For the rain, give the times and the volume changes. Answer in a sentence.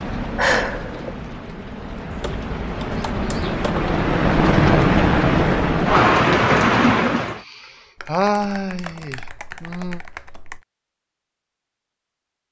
The rain can be heard from 0.0 to 7.4 s, getting louder.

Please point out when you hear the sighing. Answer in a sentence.
You can hear the sighing from 0.3 to 1.1 s and from 7.4 to 10.0 s.